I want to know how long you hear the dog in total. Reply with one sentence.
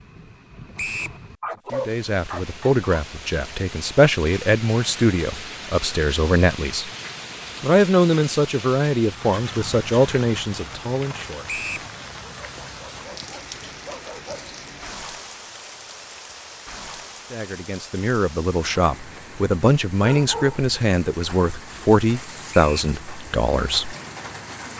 The dog can be heard for 4 seconds in total.